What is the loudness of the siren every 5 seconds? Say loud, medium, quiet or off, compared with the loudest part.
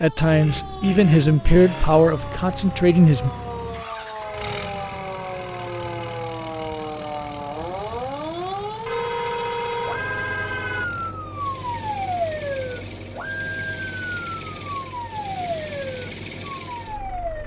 medium, loud, loud, loud.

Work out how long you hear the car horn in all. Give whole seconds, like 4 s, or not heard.
4 s.